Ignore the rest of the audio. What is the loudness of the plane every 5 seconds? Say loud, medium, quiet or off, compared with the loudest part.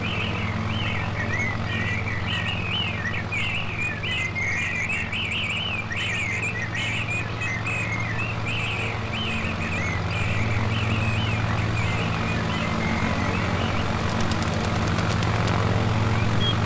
medium, medium, loud, loud.